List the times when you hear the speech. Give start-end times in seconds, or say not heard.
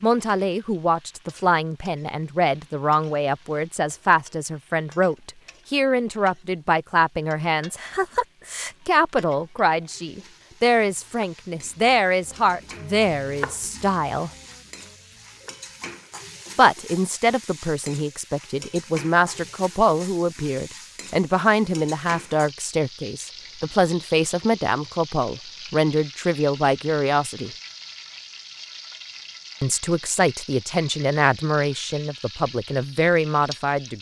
0.0-14.3, 16.6-27.5, 29.6-33.9.